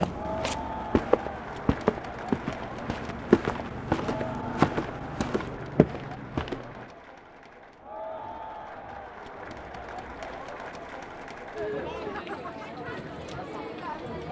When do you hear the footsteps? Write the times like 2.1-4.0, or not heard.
0.0-6.9.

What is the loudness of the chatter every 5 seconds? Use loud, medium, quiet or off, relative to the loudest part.
loud, medium, loud.